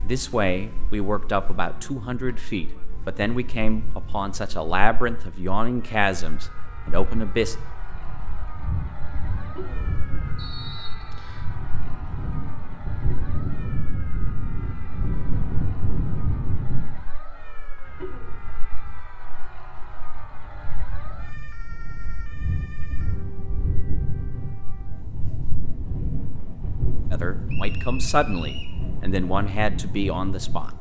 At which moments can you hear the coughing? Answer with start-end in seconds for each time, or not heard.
9.3-9.9, 17.8-18.4.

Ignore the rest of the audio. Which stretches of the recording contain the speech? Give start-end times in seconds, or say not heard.
0.0-7.5, 27.1-30.7.